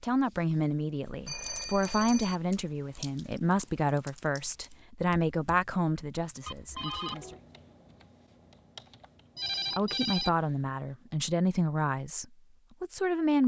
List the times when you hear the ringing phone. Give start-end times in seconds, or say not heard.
1.1-2.4, 6.5-7.4, 9.3-10.3.